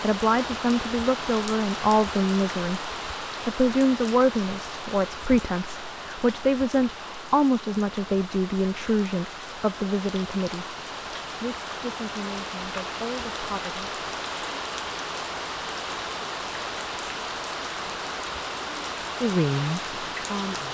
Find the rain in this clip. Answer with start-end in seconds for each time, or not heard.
0.0-20.6.